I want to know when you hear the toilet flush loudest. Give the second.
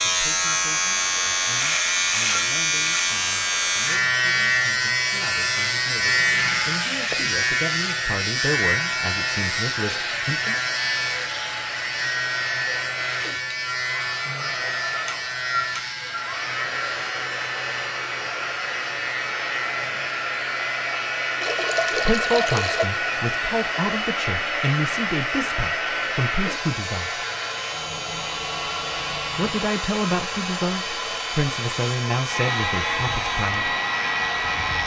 22 s.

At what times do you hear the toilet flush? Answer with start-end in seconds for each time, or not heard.
6.2-7.4, 21.4-22.9.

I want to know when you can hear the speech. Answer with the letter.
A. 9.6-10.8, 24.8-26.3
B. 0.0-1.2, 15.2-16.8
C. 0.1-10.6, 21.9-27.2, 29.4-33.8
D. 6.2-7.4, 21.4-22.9
C.